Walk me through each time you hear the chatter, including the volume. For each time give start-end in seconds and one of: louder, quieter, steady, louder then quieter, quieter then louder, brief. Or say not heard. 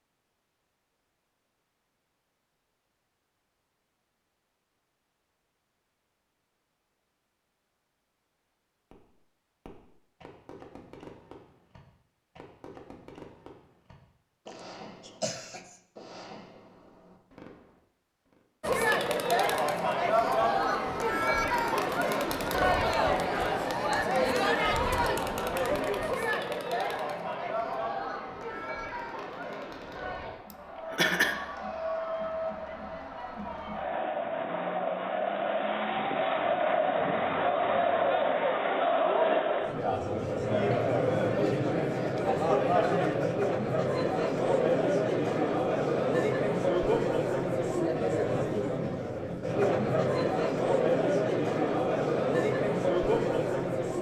18.6-53.9 quieter then louder.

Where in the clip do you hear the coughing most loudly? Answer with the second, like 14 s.
31 s.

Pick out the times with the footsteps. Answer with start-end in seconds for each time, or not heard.
not heard.